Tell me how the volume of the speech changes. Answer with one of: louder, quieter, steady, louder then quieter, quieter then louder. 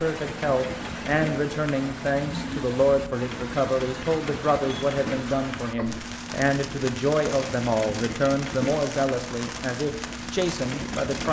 steady.